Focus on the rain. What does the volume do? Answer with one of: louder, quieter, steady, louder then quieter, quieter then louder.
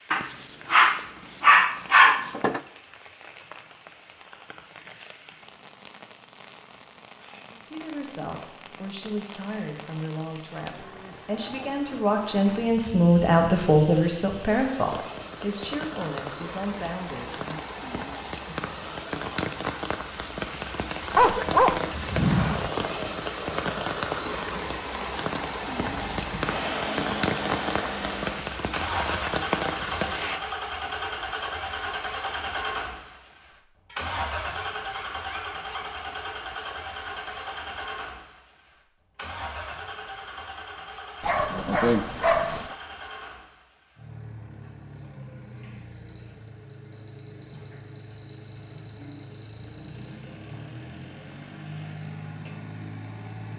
louder.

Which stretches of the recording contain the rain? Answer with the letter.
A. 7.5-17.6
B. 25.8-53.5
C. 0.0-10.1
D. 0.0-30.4
D.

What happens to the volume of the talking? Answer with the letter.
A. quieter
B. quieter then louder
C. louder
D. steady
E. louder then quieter
E.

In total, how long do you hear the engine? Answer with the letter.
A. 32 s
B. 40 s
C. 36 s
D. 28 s
D.